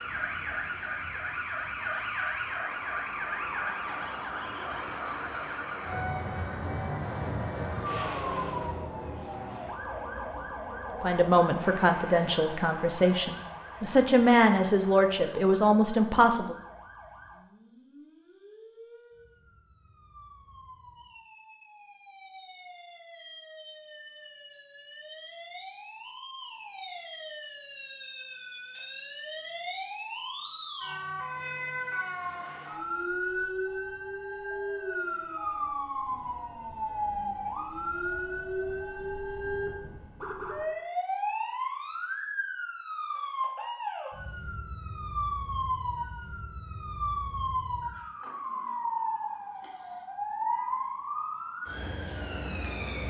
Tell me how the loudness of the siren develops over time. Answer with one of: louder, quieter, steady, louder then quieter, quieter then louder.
quieter then louder.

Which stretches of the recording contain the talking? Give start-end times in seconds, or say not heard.
11.0-16.6.